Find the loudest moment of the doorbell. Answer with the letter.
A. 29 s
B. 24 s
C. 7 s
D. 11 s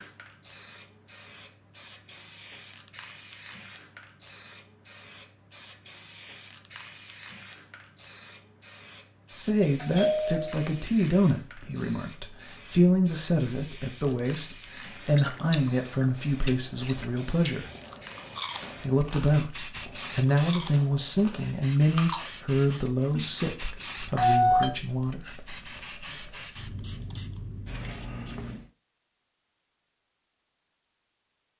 B.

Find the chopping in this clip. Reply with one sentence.
The chopping can't be heard in this clip.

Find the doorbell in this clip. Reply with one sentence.
You can hear the doorbell from 9.8 to 10.8 s and from 23.1 to 24.8 s.